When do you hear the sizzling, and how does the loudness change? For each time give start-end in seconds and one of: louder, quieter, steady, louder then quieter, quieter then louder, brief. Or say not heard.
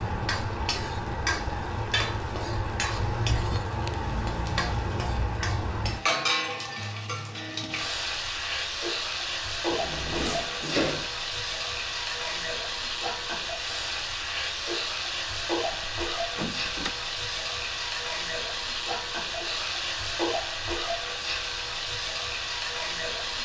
0.0-23.4 steady.